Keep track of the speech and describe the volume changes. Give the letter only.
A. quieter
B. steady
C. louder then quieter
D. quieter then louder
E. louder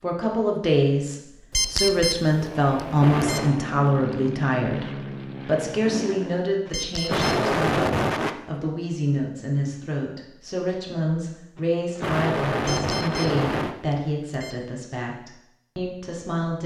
A.